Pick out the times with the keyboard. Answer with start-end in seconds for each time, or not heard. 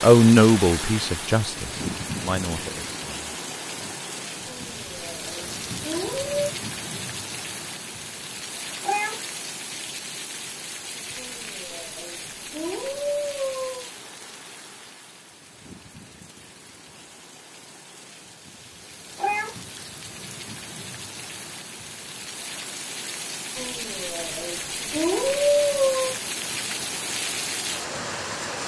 not heard.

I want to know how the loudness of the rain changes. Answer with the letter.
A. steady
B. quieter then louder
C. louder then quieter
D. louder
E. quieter
B.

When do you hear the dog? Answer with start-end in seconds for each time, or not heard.
4.5-6.5, 11.2-13.9, 23.6-26.1.